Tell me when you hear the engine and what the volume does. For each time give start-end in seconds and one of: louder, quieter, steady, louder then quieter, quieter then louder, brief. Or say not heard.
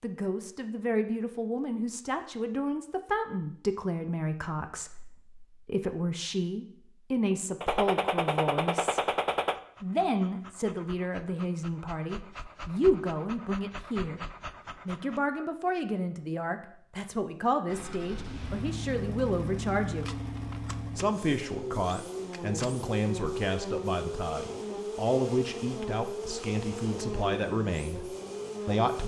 17.6-29.0 steady.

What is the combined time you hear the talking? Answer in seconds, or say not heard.
27 s.